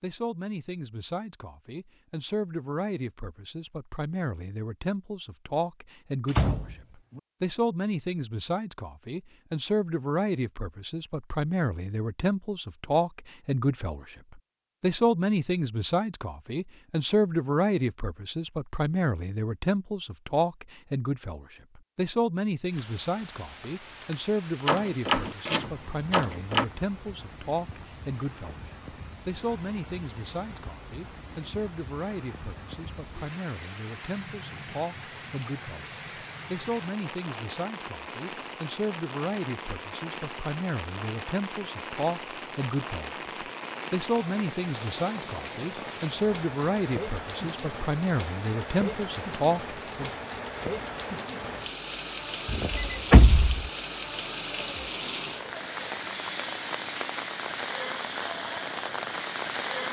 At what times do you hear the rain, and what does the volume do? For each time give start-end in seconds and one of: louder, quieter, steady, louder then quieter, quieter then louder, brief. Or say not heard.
22.6-59.8 louder.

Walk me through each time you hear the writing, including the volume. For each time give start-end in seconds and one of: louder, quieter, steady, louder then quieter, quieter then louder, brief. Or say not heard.
not heard.